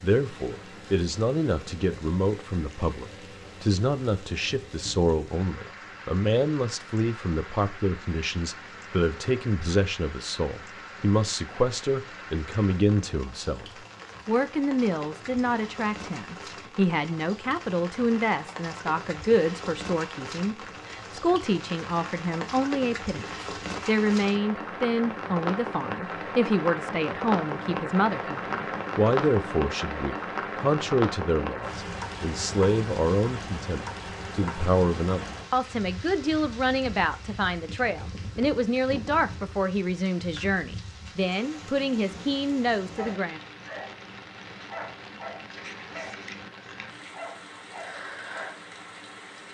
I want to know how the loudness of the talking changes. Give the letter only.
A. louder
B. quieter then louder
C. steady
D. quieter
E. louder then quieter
C.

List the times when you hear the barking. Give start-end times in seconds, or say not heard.
43.0-48.5.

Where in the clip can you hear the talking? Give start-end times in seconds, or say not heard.
0.0-43.4.